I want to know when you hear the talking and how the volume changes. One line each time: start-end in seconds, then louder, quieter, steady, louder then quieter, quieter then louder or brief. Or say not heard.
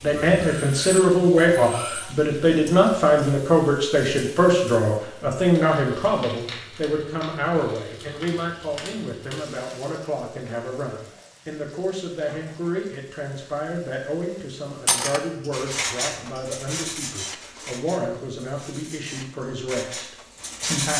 0.0-20.9 quieter.